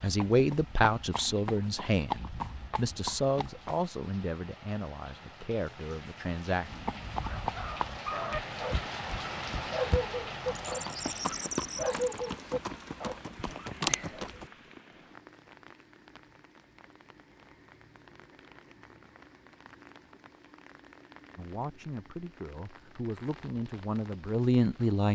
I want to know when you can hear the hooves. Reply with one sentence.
The hooves can be heard from 0.0 to 3.9 s and from 6.7 to 14.5 s.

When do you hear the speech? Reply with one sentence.
You can hear the speech from 0.0 to 6.8 s and from 21.4 to 25.0 s.